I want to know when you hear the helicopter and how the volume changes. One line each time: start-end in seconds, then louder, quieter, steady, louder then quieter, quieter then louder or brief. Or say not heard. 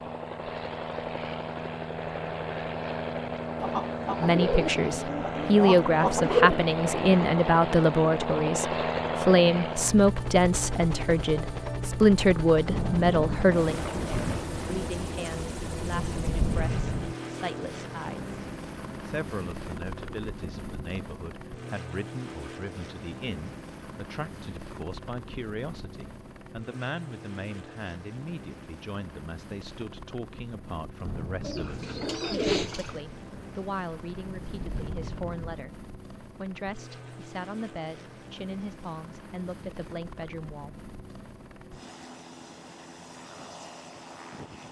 0.0-44.6 quieter.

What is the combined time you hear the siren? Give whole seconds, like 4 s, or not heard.
not heard.